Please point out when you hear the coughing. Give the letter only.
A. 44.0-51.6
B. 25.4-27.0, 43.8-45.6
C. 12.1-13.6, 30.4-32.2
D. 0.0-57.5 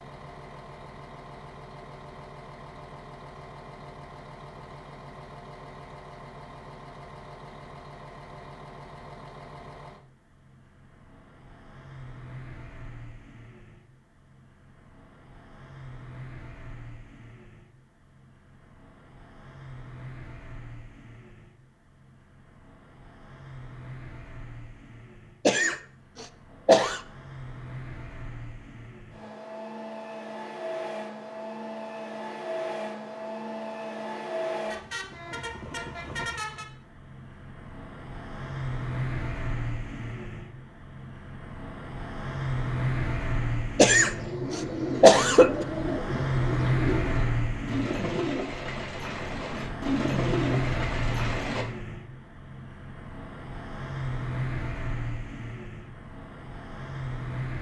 B.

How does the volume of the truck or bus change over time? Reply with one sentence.
The volume of the truck or bus goes up.